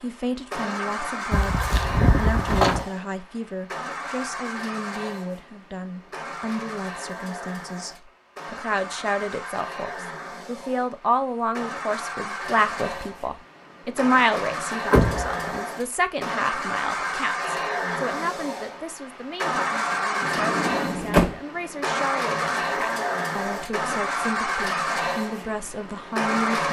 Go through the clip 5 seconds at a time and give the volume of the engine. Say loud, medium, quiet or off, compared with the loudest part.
medium, medium, medium, loud, loud, loud.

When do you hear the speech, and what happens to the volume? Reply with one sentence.
The speech can be heard from 0.0 to 26.6 s, getting louder then quieter.